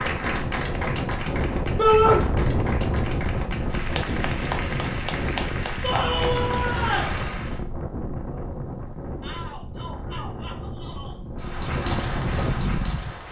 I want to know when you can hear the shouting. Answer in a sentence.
You can hear the shouting from 1.8 to 2.2 s, from 5.8 to 7.2 s and from 9.2 to 11.2 s.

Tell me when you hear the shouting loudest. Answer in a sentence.
The loudest moment of the shouting is at 2 seconds.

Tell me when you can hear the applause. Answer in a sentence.
The applause can be heard from 0.0 to 7.6 s and from 11.4 to 13.2 s.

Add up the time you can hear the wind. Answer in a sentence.
You can hear the wind for 13 seconds altogether.